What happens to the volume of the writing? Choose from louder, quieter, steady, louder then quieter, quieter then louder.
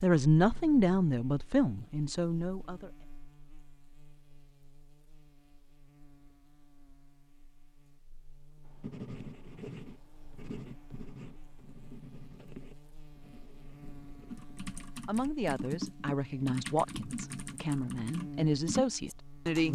quieter.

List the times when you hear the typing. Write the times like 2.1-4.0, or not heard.
14.3-19.7.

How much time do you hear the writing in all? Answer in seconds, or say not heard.
6 s.